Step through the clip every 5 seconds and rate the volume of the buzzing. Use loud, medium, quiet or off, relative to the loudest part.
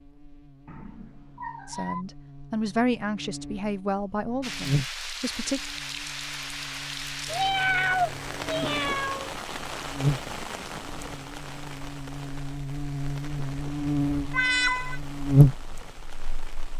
quiet, quiet, medium, loud.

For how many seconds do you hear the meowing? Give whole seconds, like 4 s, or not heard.
4 s.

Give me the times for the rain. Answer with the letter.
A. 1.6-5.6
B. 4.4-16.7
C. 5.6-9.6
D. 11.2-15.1
B.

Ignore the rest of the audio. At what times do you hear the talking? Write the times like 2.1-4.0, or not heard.
1.6-5.6.